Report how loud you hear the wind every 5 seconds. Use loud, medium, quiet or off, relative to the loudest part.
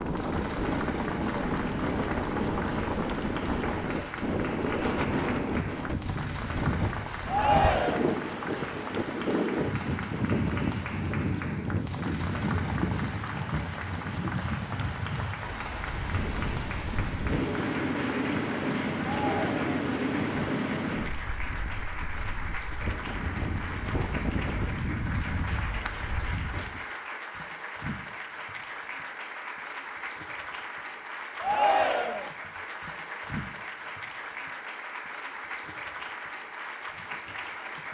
loud, loud, loud, loud, loud, medium, off, off.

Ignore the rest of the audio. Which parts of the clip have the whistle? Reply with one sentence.
The whistle can't be heard in this clip.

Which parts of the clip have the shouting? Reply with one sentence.
You can hear the shouting from 7.2 to 8.0 s, from 19.1 to 19.8 s and from 31.4 to 32.3 s.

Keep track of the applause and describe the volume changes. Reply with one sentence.
The loudness of the applause stays about the same.